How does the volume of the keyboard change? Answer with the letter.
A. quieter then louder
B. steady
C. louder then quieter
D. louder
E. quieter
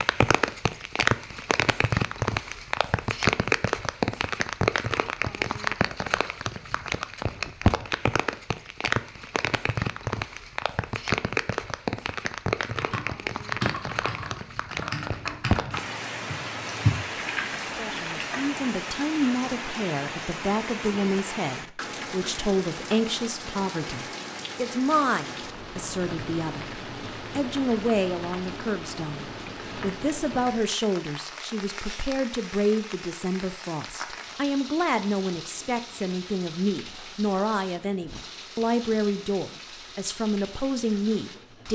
A.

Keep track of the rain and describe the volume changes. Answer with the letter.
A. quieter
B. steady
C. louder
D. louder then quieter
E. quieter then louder
A.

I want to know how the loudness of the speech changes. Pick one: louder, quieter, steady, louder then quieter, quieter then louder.
steady.